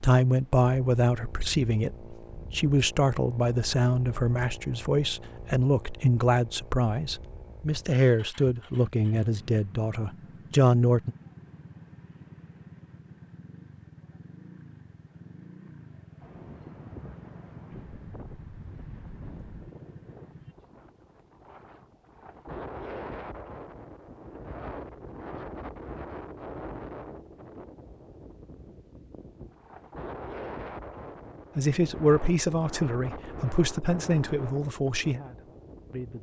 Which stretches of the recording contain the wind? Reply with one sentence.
You can hear the wind from 16.2 to 36.1 s.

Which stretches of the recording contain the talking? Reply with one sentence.
You can hear the talking from 0.0 to 11.2 s and from 31.6 to 36.1 s.